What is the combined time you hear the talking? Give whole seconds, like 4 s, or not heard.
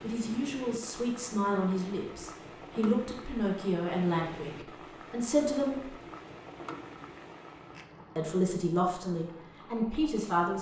8 s.